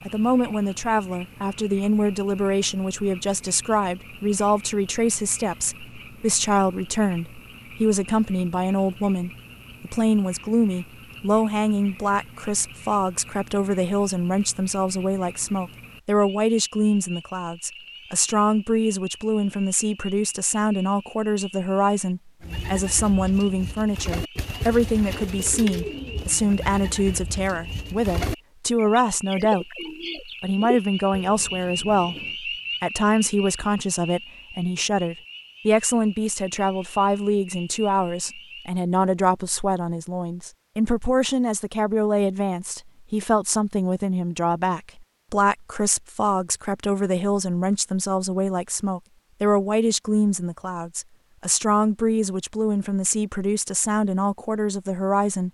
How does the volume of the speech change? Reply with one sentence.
The loudness of the speech stays about the same.